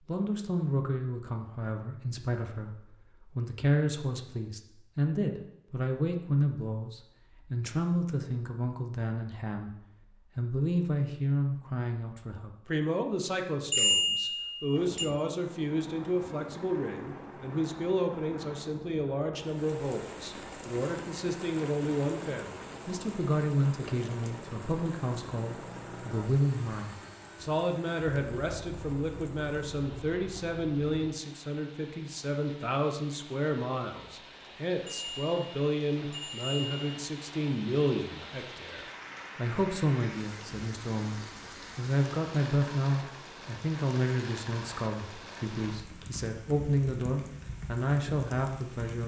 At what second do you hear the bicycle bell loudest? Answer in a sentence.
The loudest moment of the bicycle bell is at 14 seconds.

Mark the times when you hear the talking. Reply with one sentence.
The talking can be heard from 0.1 to 9.7 s and from 10.3 to 49.0 s.